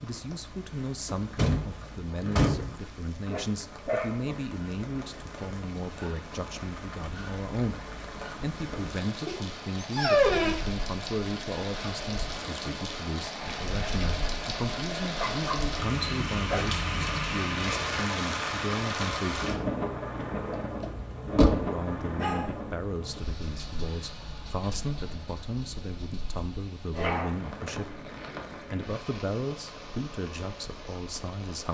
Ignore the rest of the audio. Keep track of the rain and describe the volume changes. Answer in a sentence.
The volume of the rain goes up, then down.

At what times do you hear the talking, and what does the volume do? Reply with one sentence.
The talking can be heard from 0.0 to 19.4 s, at a steady volume; and from 21.4 to 31.6 s, at a steady volume.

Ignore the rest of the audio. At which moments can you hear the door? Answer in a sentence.
You can hear the door from 1.1 to 2.8 s and from 20.4 to 21.7 s.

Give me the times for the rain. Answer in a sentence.
The rain can be heard from 0.0 to 31.6 s.